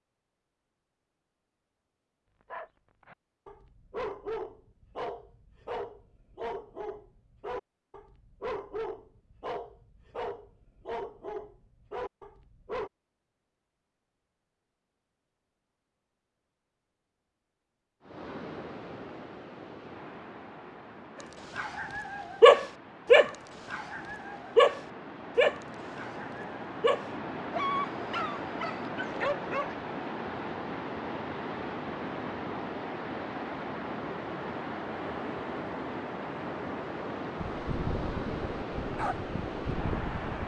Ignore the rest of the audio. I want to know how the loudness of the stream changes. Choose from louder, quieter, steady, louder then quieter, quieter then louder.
louder.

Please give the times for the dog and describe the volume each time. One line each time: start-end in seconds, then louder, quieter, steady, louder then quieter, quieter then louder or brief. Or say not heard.
2.5-12.9 steady
21.2-29.8 quieter
37.5-40.4 brief.